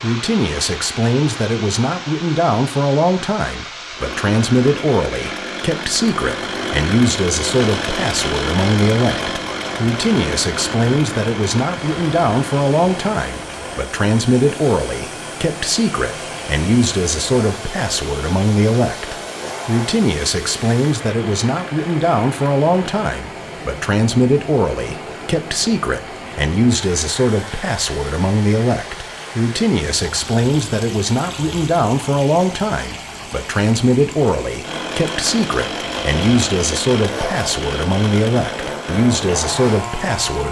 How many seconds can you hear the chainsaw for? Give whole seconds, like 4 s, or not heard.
25 s.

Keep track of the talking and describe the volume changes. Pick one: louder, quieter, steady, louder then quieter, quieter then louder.
steady.